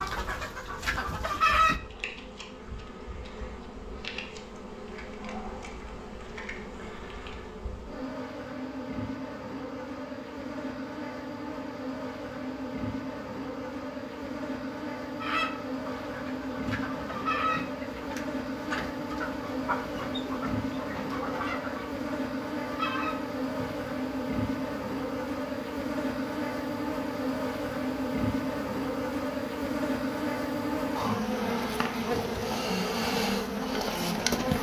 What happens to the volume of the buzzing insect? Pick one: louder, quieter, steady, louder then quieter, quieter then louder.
louder.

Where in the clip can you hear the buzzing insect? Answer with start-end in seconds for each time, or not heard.
0.0-34.5.